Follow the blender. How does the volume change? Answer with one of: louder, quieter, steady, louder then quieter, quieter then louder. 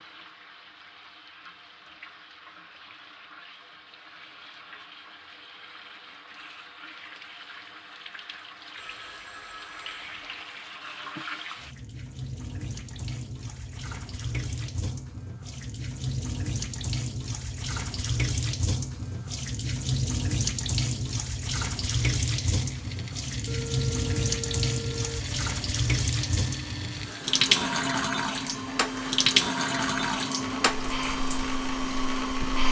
louder.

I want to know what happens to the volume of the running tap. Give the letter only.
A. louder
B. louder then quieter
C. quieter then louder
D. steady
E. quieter
A.